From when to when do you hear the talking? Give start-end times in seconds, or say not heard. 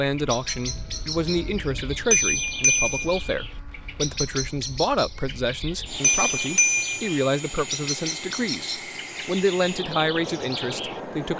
0.0-11.3.